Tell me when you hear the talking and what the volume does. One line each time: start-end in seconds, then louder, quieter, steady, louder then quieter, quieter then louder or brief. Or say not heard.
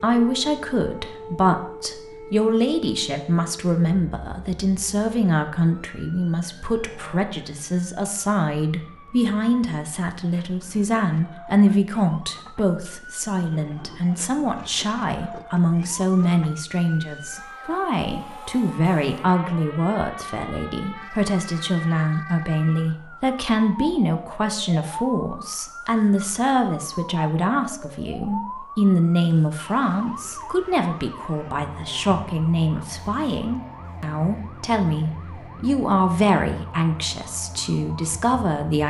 0.0-38.8 steady.